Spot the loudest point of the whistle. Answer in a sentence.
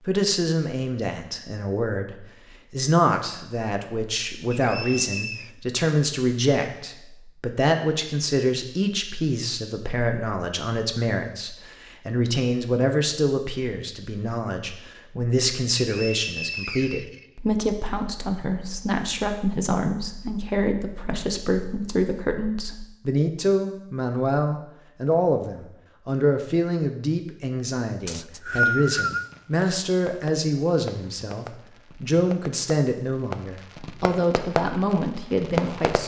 The volume of the whistle peaks at 29 seconds.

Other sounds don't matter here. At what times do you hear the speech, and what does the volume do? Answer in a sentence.
You can hear the speech from 0.0 to 36.0 s, at a steady volume.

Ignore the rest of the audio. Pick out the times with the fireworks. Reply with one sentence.
The fireworks can be heard from 28.5 to 36.0 s.